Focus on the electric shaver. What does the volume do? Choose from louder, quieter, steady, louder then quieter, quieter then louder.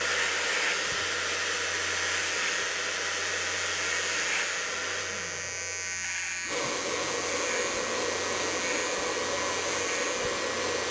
steady.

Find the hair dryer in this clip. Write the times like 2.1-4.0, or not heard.
0.0-10.8.